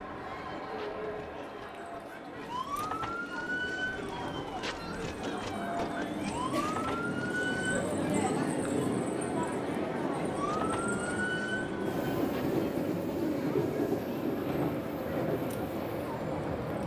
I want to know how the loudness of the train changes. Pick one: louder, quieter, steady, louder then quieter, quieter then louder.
louder.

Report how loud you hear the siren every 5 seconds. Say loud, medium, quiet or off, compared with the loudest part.
loud, loud, loud, off.